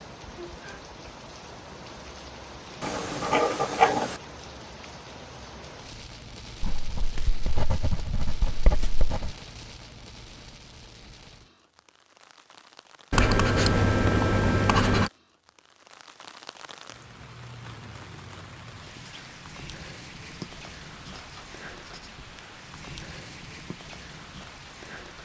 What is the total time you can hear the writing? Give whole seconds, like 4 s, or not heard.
8 s.